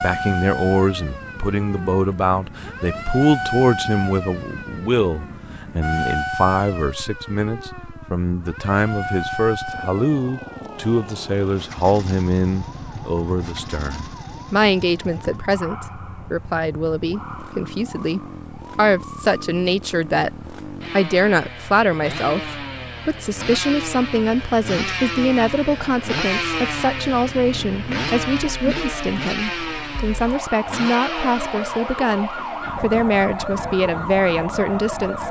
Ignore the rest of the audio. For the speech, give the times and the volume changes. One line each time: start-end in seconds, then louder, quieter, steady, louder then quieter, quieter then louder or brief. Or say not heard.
0.0-35.2 steady.